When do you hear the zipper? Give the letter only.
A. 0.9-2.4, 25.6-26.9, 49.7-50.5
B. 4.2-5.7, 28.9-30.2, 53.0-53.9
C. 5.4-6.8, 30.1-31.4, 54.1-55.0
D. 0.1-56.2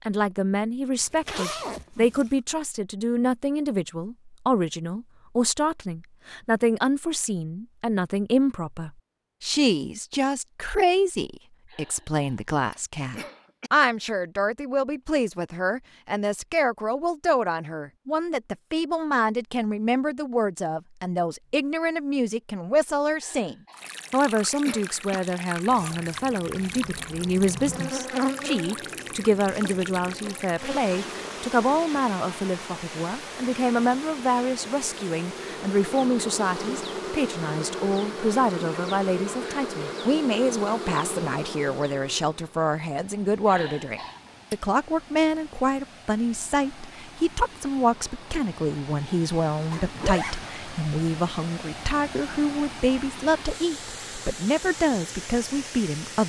A.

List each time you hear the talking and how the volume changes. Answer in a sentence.
The talking can be heard from 0.1 to 56.2 s, at a steady volume.